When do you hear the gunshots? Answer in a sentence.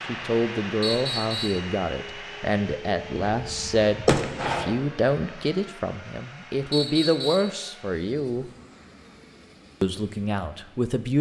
The gunshots can be heard from 3.4 to 4.8 s.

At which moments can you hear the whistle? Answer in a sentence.
You can hear the whistle from 0.8 to 1.6 s and from 6.7 to 7.5 s.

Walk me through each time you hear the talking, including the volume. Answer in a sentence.
The talking can be heard from 0.0 to 8.5 s, at a steady volume; and briefly from 9.8 to 11.1 s.